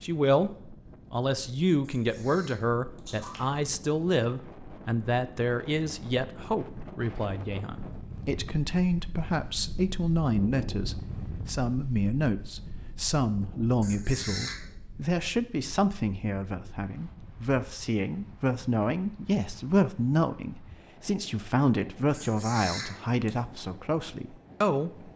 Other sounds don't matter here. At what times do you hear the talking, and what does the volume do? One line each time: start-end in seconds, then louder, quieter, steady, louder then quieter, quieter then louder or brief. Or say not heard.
0.0-24.9 steady.